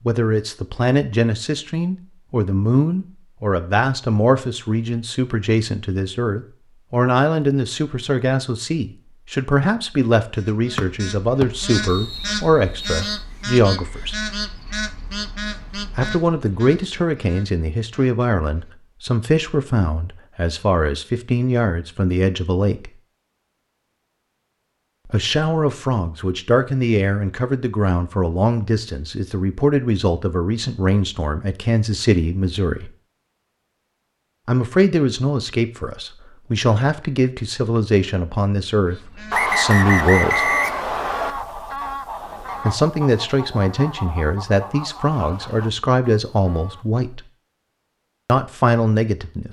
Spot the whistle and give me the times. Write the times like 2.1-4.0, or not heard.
10.8-13.1, 39.3-41.4.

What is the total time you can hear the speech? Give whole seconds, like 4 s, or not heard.
41 s.